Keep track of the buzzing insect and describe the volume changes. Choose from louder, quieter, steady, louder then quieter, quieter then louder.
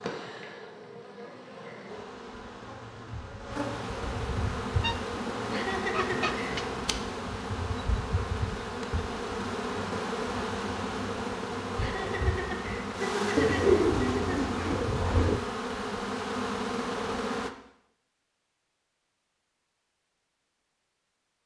louder.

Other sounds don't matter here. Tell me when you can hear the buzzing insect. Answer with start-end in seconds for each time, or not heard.
0.0-17.5.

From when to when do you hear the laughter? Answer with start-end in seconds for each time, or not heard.
5.5-6.7, 11.8-14.4.